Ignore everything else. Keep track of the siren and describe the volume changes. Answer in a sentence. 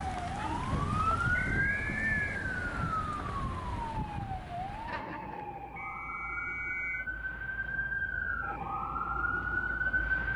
The loudness of the siren goes down, then up.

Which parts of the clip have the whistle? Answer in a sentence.
You can hear the whistle from 1.3 to 2.9 s and from 5.8 to 7.0 s.